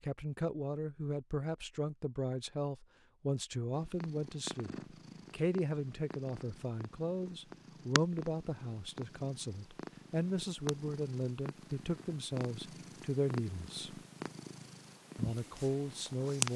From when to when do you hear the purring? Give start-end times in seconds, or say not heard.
3.7-16.5.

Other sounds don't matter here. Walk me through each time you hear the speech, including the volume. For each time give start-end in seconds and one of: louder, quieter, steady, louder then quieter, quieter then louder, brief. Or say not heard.
0.0-4.7 steady
5.3-14.0 steady
15.2-16.5 brief.